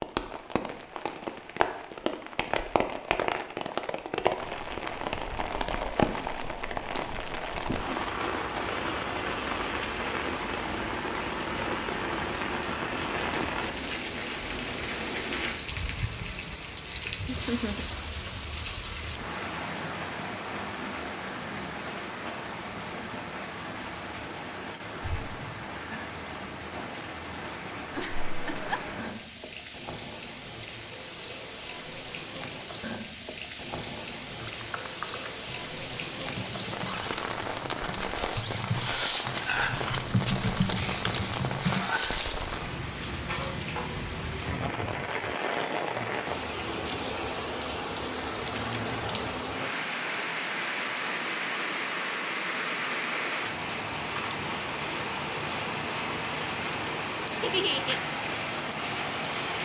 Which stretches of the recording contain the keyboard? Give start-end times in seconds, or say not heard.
34.4-41.9.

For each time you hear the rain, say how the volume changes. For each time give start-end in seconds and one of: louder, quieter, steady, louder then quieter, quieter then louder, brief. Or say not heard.
0.0-59.5 quieter then louder.